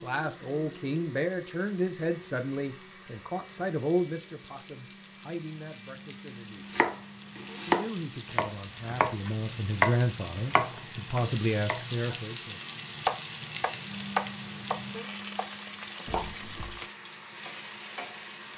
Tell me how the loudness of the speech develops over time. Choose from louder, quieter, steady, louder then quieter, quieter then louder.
quieter then louder.